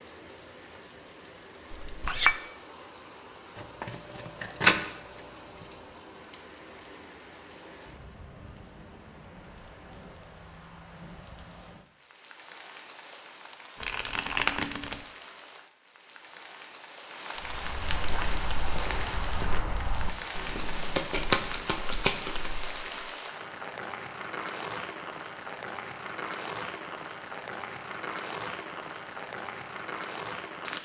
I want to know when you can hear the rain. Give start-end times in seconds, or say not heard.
0.0-30.8.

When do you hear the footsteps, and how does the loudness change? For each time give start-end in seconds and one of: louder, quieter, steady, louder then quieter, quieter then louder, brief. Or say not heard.
17.4-23.0 quieter.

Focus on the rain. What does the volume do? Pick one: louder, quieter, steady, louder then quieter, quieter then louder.
louder.